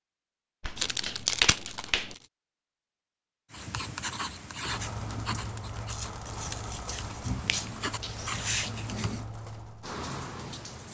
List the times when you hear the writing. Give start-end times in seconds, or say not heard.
3.5-9.2.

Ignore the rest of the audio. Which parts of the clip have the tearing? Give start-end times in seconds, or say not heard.
0.8-2.1, 5.8-7.7.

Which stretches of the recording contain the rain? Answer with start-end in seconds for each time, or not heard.
4.7-10.8.